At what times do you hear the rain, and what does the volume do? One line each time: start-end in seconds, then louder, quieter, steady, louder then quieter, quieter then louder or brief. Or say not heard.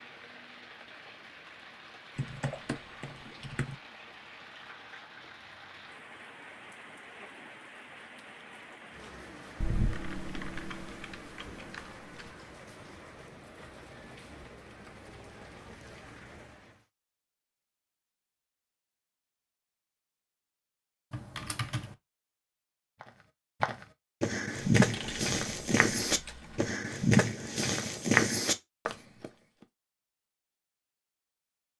0.0-16.9 steady.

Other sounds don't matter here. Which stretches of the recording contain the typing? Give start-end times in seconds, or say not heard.
2.1-3.8, 9.6-12.3, 21.1-21.9, 24.8-26.8.